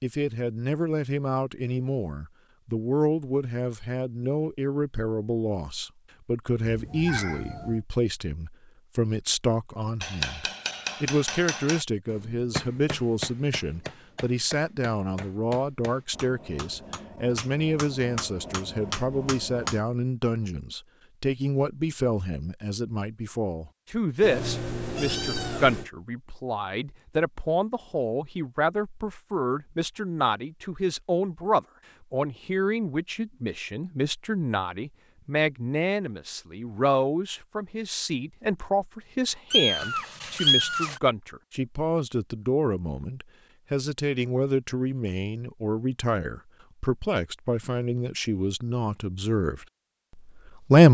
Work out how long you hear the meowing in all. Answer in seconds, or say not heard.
4 s.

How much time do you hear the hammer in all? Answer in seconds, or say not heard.
10 s.